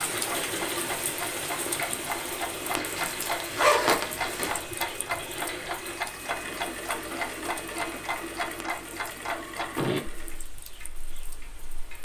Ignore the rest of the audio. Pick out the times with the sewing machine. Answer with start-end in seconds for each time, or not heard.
0.0-10.4.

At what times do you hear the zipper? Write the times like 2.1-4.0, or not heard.
2.8-4.6.